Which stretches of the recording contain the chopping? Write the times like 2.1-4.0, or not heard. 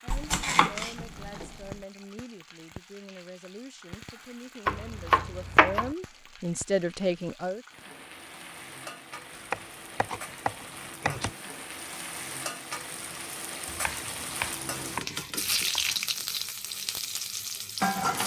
0.1-1.8, 4.7-6.0, 9.3-11.3, 13.7-15.9.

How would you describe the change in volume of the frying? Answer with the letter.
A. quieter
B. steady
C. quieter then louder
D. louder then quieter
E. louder
E.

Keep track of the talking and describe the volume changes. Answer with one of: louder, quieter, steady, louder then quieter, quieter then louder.
louder.